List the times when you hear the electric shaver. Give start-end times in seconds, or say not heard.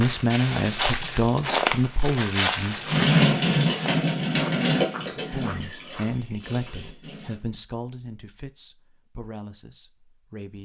not heard.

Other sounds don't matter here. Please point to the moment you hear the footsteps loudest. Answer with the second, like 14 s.
2 s.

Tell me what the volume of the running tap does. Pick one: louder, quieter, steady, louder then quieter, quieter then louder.
quieter.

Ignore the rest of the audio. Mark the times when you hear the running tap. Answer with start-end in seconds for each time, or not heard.
2.8-7.4.